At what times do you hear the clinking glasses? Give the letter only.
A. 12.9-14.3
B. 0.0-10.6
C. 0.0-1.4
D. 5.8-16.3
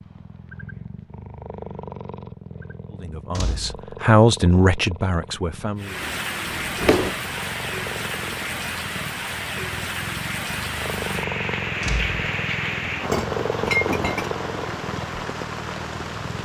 A.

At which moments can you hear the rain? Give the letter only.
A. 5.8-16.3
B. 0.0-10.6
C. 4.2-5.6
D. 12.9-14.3
A.